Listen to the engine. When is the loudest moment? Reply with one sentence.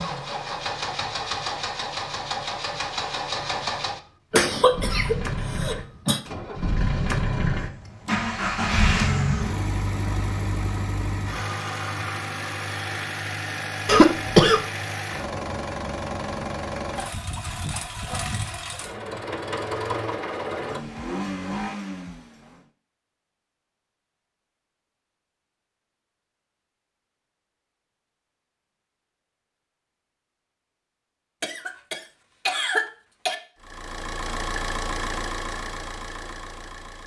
The loudest moment of the engine is at 9 seconds.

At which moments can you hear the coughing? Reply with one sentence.
You can hear the coughing from 4.3 to 6.2 s, from 13.8 to 14.6 s and from 31.4 to 33.4 s.